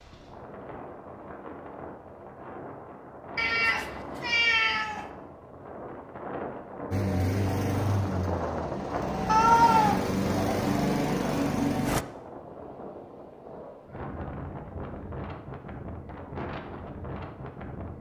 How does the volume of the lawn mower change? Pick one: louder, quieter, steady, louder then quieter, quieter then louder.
quieter then louder.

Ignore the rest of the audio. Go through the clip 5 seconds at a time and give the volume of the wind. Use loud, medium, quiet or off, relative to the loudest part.
medium, loud, loud, loud.